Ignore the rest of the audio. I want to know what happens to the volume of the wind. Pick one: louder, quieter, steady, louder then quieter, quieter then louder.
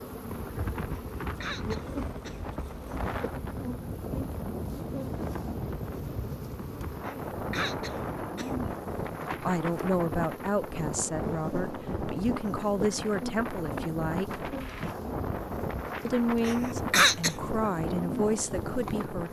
steady.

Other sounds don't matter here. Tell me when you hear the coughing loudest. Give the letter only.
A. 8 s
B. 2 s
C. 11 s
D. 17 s
D.